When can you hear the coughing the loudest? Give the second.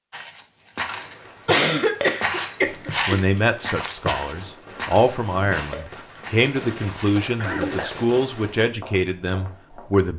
2 s.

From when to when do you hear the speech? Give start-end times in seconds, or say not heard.
2.6-10.1.